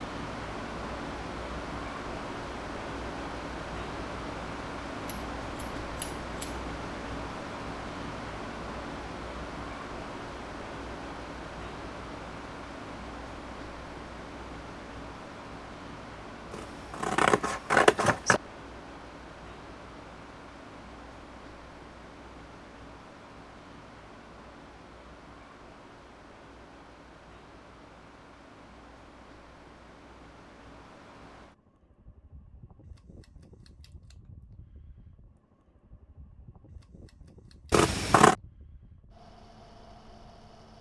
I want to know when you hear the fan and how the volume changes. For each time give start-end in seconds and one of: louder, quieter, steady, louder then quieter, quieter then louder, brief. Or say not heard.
0.0-40.7 quieter.